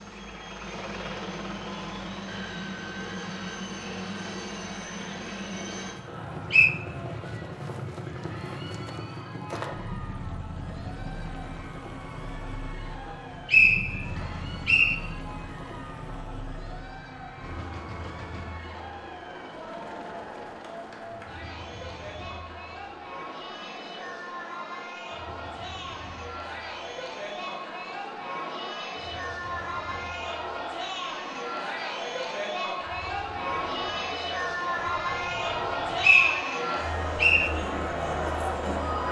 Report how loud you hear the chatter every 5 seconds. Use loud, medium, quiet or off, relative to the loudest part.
quiet, quiet, quiet, quiet, medium, medium, loud, loud.